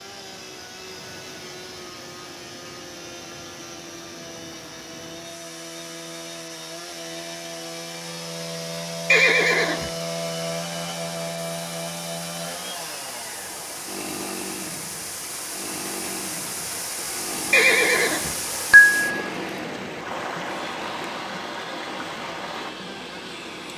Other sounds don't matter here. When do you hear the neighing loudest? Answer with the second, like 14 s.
19 s.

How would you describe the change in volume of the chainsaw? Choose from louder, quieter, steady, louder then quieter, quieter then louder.
louder then quieter.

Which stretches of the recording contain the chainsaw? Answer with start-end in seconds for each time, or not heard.
0.0-23.7.